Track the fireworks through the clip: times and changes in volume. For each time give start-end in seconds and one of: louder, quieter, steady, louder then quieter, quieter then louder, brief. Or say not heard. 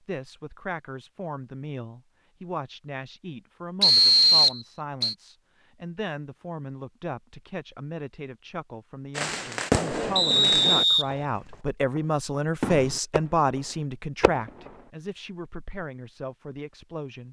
9.2-13.2 quieter then louder
14.2-14.7 brief.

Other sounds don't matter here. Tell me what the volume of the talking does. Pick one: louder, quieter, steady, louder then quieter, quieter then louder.
louder then quieter.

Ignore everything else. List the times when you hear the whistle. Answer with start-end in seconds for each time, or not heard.
3.8-5.2, 10.2-11.5.